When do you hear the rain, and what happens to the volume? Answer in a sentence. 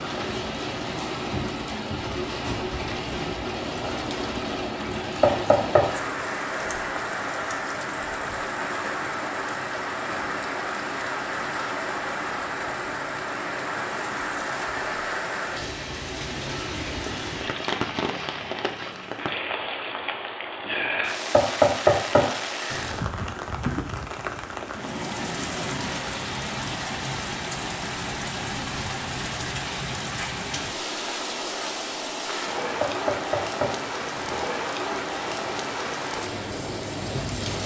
The rain can be heard from 0.0 to 37.6 s, at a steady volume.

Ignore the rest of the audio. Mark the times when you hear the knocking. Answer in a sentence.
You can hear the knocking from 5.2 to 5.9 s, from 21.3 to 23.0 s and from 32.8 to 34.5 s.